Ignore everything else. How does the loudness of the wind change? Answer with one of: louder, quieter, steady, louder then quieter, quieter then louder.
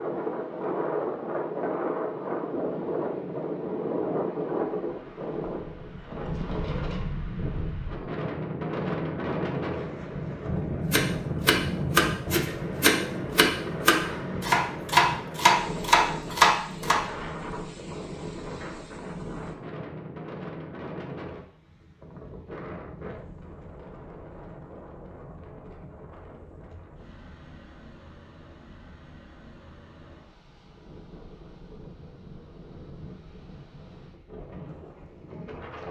quieter.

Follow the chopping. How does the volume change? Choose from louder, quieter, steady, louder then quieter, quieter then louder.
louder.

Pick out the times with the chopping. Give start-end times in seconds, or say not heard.
10.9-17.0.